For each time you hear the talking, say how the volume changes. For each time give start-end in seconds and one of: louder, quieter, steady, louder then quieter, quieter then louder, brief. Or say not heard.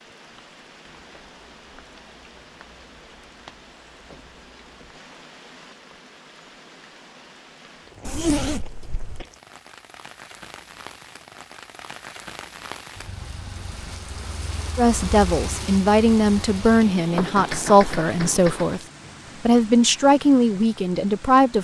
14.8-18.8 steady
19.4-21.5 brief.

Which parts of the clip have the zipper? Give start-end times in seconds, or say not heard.
8.1-9.2.